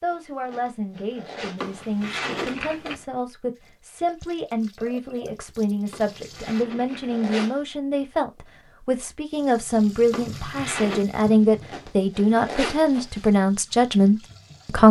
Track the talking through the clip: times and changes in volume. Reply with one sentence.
You can hear the talking from 0.0 to 14.8 s, getting louder.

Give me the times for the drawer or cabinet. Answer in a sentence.
You can hear the drawer or cabinet from 1.6 to 3.0 s, from 5.9 to 7.2 s and from 10.1 to 11.1 s.